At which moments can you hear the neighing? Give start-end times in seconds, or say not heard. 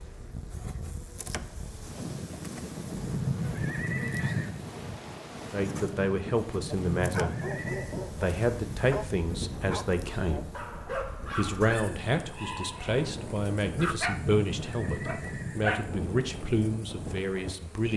2.9-4.5, 6.8-8.0, 14.0-15.6.